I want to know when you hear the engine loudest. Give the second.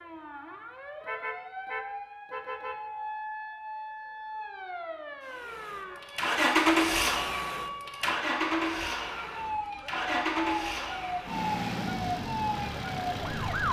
7 s.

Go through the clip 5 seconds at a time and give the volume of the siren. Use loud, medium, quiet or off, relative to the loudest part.
medium, medium, loud.